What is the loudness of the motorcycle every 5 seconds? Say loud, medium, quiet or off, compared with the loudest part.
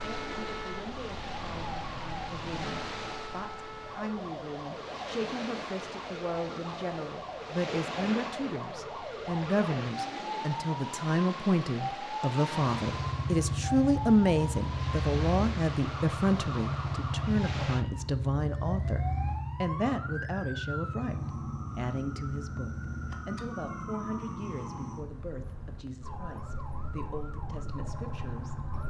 off, off, loud, loud, medium, medium.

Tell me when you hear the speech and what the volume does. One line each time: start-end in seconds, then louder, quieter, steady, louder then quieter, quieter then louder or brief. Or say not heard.
0.0-28.6 louder then quieter.